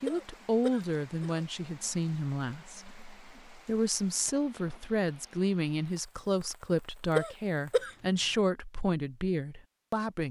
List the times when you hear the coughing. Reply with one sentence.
The coughing can be heard from 0.1 to 1.4 s and from 7.2 to 7.9 s.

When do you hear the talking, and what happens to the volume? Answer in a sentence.
You can hear the talking from 0.0 to 10.2 s, at a steady volume.